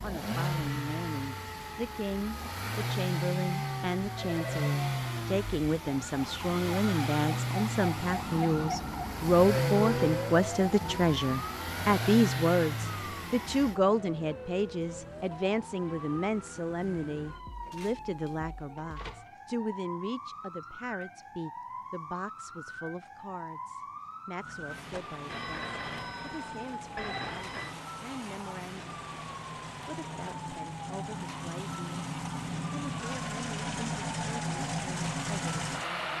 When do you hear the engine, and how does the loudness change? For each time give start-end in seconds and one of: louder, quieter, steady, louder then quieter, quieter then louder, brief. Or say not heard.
0.0-13.8 steady
24.4-36.1 louder.